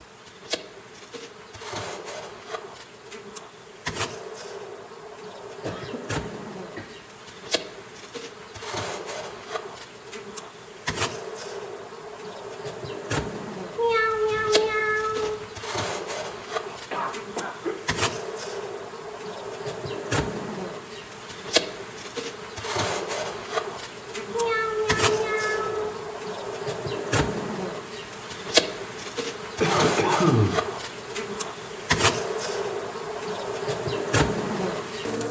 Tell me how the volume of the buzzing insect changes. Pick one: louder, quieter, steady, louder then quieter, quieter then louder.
louder.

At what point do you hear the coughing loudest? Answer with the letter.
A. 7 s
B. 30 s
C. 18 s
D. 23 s
B.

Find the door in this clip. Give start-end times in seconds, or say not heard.
not heard.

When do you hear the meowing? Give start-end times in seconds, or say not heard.
13.8-15.4, 24.3-26.0.